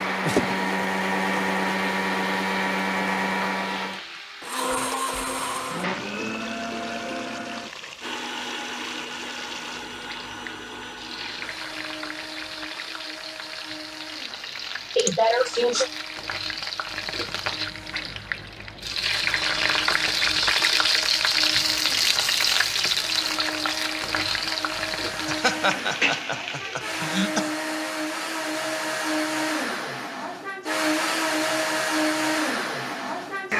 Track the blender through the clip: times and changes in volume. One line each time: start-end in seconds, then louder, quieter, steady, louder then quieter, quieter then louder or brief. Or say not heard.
0.0-33.5 quieter then louder.